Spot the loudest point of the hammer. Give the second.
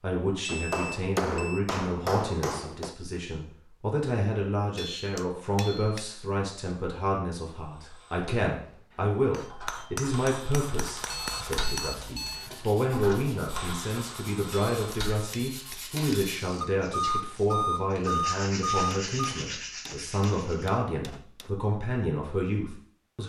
1 s.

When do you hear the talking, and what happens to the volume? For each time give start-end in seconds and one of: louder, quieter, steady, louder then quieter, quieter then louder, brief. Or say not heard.
0.0-23.2 steady.